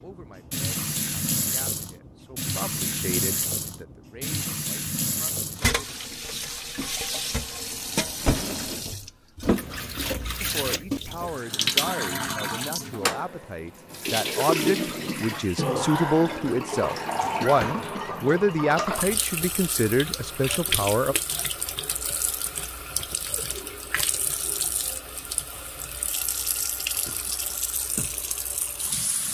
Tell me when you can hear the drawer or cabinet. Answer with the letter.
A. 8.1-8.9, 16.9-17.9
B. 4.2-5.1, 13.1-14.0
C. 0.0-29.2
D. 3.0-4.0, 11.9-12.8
A.